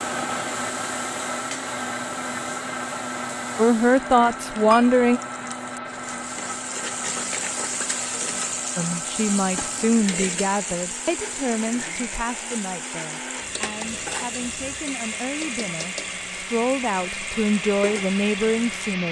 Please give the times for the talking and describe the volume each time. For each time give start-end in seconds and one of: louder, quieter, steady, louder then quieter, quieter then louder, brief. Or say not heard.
3.5-5.2 brief
8.8-19.0 quieter then louder.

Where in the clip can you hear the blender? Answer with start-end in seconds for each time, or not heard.
0.0-19.0.